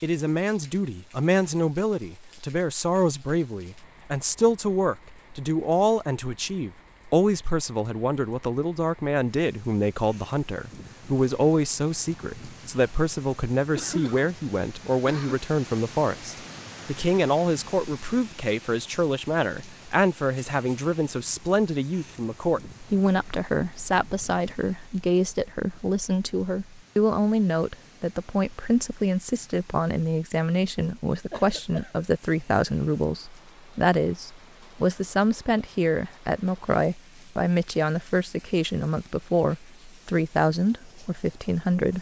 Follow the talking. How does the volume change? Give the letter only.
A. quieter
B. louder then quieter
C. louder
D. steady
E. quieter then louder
D.